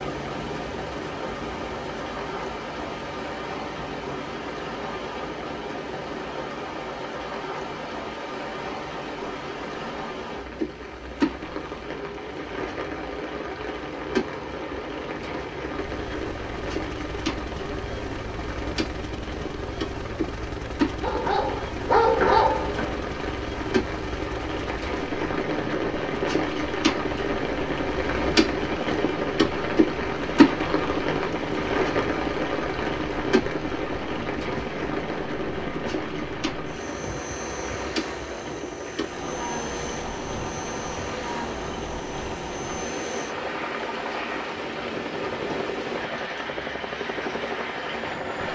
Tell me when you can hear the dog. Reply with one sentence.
The dog can be heard from 21.0 to 23.0 s.